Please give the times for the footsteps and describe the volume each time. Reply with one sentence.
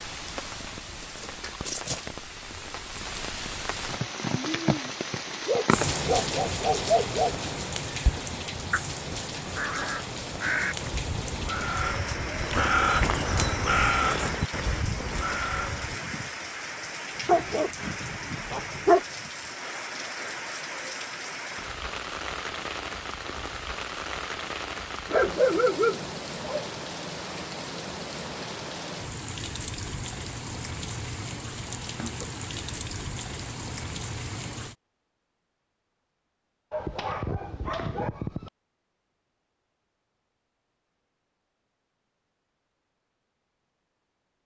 The footsteps can't be heard in this clip.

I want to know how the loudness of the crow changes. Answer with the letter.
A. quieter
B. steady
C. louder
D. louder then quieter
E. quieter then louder
D.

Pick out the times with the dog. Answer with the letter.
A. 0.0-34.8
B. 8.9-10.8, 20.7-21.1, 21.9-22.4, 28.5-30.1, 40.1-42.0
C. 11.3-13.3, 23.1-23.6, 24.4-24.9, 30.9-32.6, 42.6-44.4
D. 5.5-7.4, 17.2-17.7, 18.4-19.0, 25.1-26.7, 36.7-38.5
D.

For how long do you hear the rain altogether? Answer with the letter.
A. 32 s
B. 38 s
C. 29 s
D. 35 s
D.